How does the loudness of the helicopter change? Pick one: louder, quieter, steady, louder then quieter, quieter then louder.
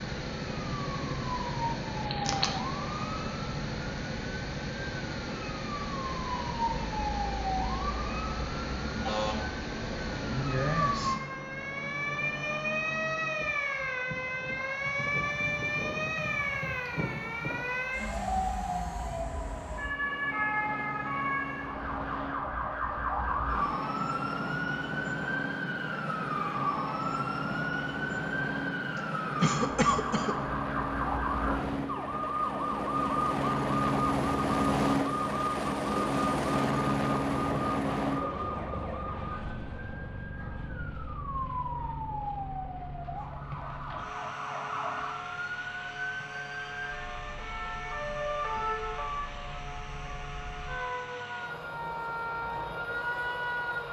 louder then quieter.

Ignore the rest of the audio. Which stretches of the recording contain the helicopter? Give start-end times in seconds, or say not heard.
0.1-53.8.